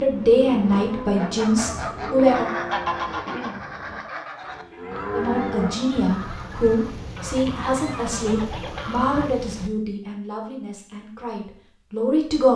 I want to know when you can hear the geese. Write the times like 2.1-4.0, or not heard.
0.6-9.3.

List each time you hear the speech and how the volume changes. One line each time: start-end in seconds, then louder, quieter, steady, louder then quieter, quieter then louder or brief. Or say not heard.
0.0-2.5 brief
5.1-12.5 quieter.